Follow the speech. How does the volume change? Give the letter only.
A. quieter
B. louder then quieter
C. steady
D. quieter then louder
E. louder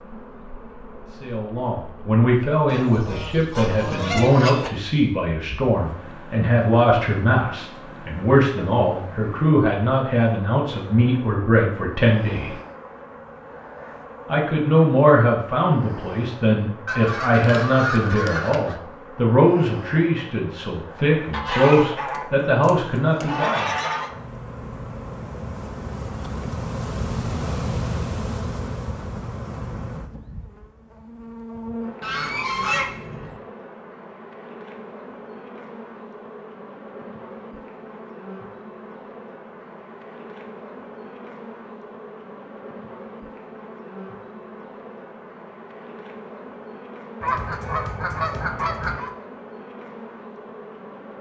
C.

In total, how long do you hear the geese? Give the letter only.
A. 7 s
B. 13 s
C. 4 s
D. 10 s
D.